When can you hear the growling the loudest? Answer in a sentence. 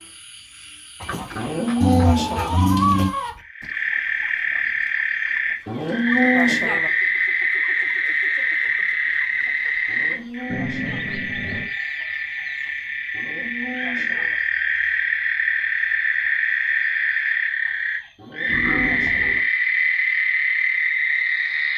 The loudest moment of the growling is at 3 seconds.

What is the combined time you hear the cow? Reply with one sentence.
You can hear the cow for 6 seconds altogether.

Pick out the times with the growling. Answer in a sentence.
You can hear the growling from 1.8 to 3.1 s, from 10.5 to 11.7 s and from 18.4 to 19.4 s.